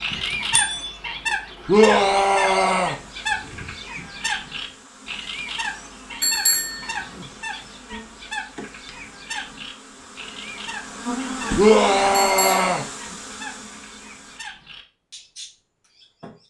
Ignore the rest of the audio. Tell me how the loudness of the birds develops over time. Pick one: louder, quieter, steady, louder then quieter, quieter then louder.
quieter.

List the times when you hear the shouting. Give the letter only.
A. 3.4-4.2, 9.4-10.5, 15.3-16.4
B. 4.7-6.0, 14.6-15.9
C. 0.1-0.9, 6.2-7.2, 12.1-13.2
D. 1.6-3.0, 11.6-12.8
D.